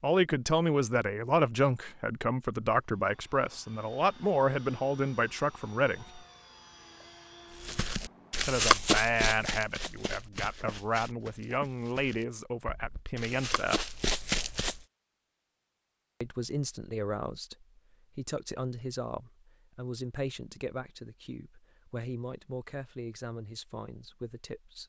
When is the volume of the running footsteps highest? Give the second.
9 s.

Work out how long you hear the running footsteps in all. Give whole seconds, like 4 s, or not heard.
7 s.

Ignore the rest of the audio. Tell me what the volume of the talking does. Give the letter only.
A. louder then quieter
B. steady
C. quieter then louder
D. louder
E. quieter
E.